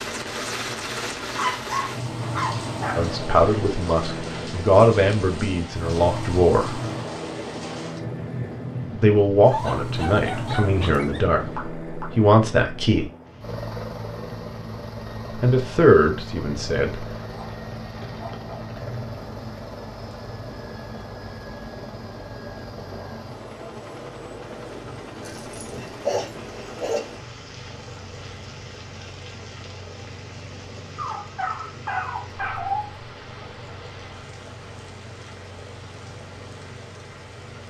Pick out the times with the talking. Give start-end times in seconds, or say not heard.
3.0-6.8, 8.9-13.1, 15.4-17.1.